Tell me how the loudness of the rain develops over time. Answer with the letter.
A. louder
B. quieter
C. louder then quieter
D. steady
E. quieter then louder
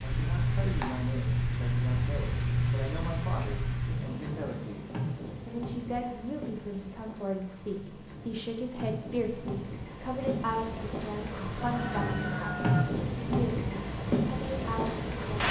E.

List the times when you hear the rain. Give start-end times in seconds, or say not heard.
0.0-15.4.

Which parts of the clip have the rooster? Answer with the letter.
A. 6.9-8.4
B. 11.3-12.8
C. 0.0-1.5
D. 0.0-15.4
B.